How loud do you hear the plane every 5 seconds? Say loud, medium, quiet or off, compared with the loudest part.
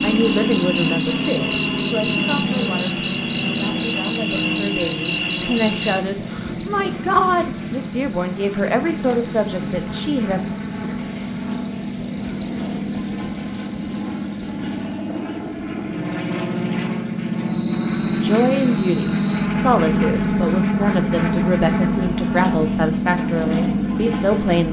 loud, medium, medium, loud, loud.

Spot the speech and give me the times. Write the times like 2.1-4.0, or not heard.
0.0-10.4, 17.9-24.6.